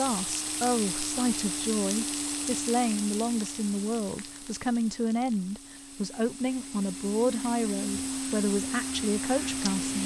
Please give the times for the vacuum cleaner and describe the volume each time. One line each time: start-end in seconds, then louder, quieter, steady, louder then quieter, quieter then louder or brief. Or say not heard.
0.0-10.0 quieter then louder.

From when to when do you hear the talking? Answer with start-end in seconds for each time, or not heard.
0.0-10.0.